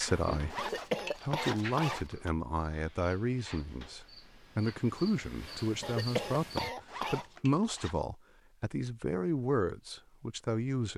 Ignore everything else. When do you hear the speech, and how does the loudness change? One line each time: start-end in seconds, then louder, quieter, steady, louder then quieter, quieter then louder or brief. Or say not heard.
0.0-10.9 steady.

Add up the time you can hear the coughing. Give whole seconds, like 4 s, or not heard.
3 s.